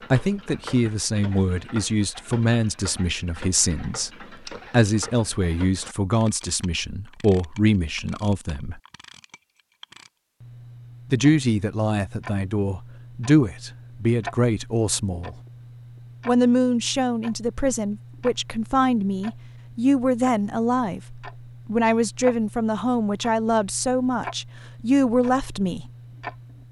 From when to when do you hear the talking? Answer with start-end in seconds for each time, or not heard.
0.1-8.8, 11.1-15.3, 16.2-25.9.